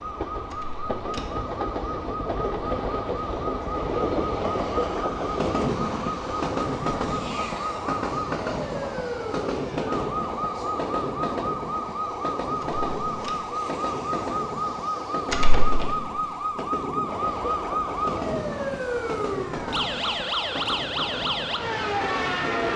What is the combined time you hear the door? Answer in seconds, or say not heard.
2 s.